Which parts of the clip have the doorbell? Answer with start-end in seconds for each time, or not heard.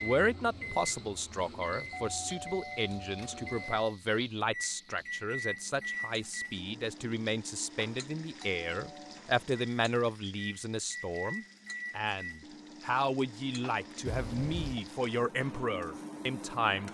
1.9-3.8, 8.4-9.2, 14.1-14.8.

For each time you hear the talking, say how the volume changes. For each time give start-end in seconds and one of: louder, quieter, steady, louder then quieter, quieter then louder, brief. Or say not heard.
0.0-16.8 steady.